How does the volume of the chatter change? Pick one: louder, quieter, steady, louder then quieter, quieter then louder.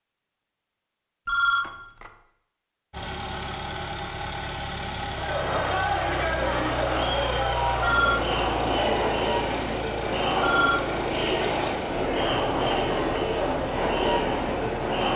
steady.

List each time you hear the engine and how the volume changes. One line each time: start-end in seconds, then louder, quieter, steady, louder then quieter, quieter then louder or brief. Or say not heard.
2.9-15.1 steady.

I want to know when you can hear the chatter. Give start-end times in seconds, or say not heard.
5.1-15.1.